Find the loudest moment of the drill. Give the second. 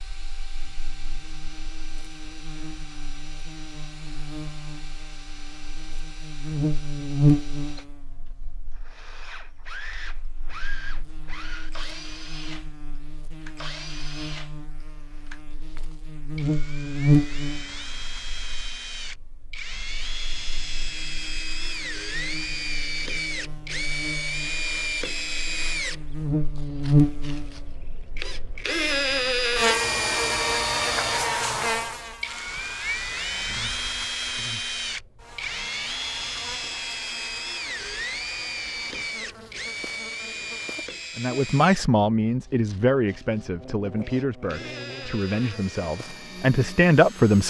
29 s.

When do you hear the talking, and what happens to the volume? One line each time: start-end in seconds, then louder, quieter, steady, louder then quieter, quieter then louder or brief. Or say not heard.
41.1-47.4 quieter then louder.